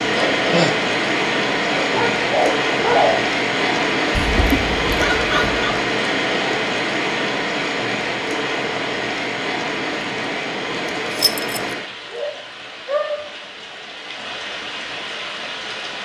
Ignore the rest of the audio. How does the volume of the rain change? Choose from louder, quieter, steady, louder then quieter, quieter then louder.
quieter.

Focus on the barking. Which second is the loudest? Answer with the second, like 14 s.
3 s.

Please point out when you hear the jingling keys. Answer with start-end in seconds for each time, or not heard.
11.1-11.8.